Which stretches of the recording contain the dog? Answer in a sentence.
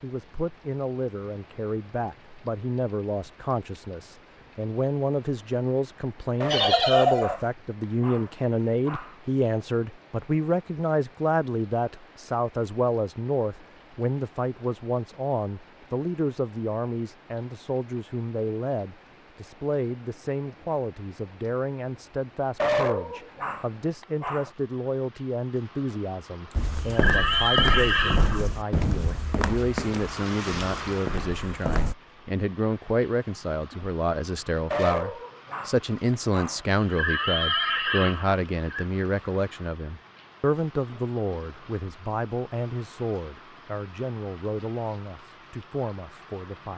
The dog can be heard from 6.4 to 9.2 s, from 22.6 to 24.5 s and from 34.7 to 36.6 s.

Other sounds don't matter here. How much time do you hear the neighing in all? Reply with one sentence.
The neighing can be heard for 5 seconds in total.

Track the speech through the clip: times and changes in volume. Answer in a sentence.
The speech can be heard from 0.0 to 46.7 s, at a steady volume.